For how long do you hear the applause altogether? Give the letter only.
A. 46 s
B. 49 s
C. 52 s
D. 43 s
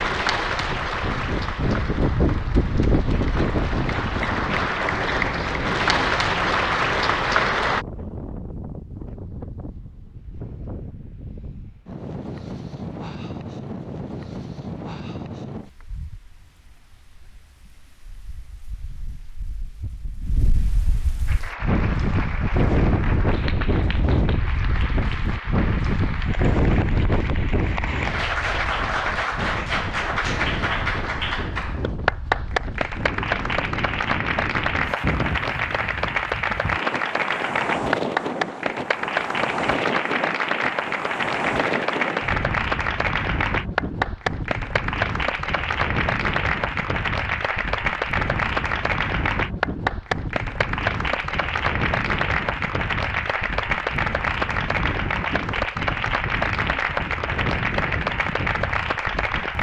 A.